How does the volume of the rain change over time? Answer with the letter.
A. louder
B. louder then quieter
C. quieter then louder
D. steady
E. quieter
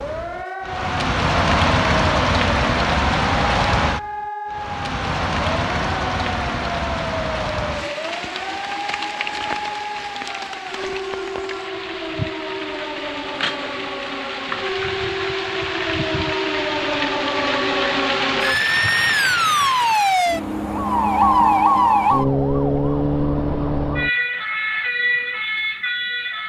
C.